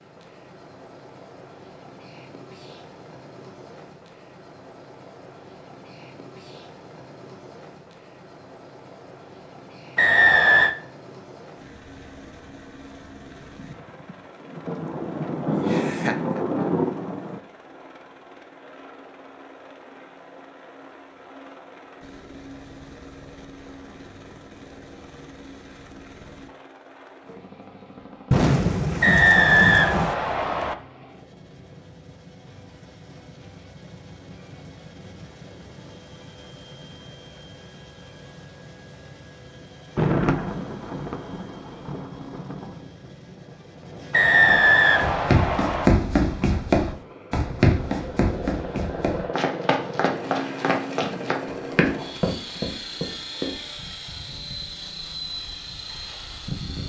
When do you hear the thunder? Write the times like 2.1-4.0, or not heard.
13.6-17.4, 28.3-30.1, 40.0-42.8.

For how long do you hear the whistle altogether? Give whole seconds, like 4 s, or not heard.
4 s.